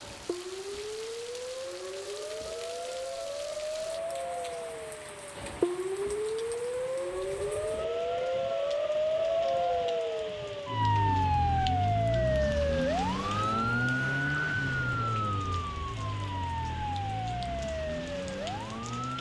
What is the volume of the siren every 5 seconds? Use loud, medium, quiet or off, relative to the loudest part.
medium, loud, loud, medium.